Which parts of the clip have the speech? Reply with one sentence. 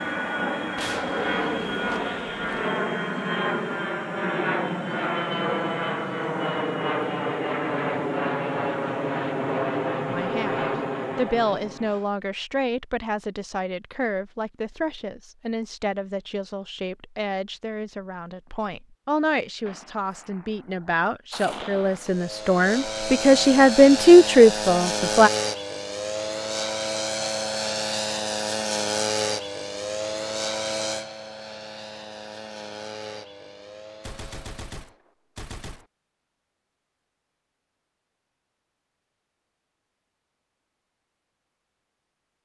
You can hear the speech from 10.1 to 25.3 s.